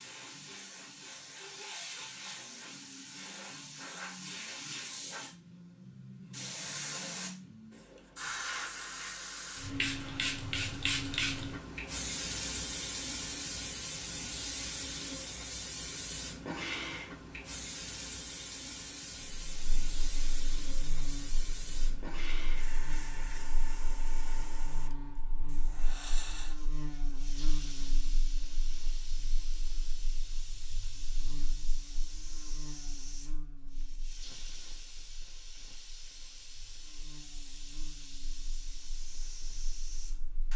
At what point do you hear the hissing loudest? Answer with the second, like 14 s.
11 s.